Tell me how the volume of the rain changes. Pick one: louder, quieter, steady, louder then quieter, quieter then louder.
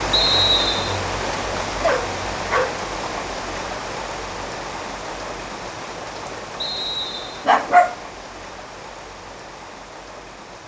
quieter.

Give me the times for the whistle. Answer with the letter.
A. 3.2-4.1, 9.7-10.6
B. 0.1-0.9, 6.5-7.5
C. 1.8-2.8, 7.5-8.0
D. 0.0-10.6
B.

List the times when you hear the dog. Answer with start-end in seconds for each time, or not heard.
1.8-2.8, 7.5-8.0.